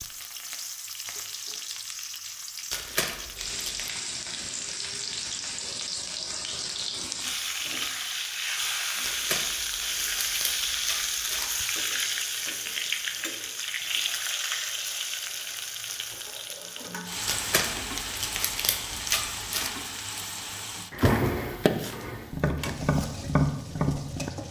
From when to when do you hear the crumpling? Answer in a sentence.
The crumpling can be heard from 2.7 to 3.9 s, from 9.0 to 11.7 s and from 17.2 to 19.8 s.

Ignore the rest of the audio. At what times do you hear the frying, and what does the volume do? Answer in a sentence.
The frying can be heard from 0.0 to 24.4 s, getting louder then quieter.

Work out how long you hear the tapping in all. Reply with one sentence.
The tapping can be heard for 3 seconds in total.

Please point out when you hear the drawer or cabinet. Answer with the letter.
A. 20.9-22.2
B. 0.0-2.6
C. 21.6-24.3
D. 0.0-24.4
A.